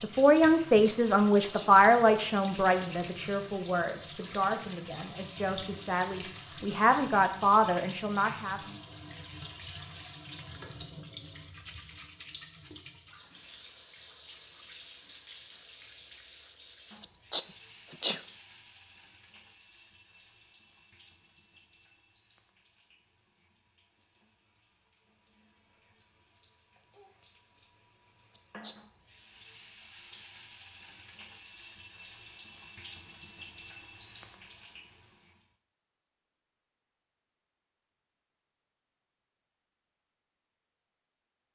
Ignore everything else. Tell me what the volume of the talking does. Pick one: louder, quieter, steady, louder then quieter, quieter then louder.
quieter then louder.